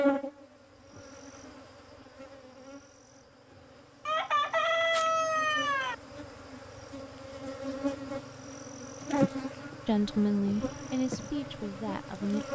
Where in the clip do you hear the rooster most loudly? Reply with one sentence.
The loudest moment of the rooster is at 5 seconds.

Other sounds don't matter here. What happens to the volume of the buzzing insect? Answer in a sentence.
The loudness of the buzzing insect goes up, then down.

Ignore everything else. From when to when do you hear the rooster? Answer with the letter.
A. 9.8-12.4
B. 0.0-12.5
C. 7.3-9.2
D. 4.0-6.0
D.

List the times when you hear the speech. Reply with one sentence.
You can hear the speech from 9.8 to 12.4 s.